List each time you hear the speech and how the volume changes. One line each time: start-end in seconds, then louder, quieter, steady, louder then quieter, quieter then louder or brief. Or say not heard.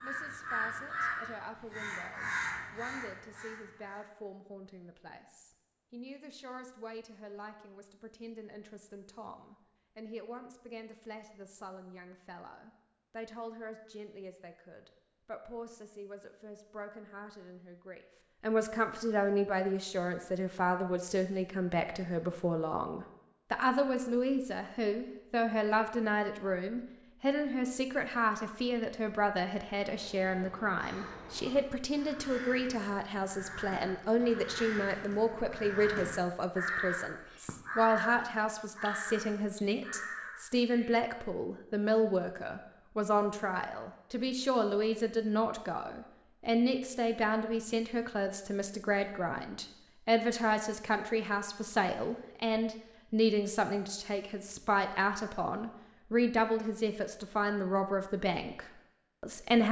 0.0-59.6 louder.